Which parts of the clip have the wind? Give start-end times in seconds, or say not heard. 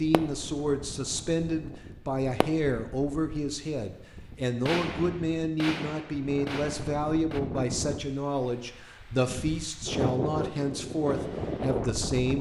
0.0-12.3.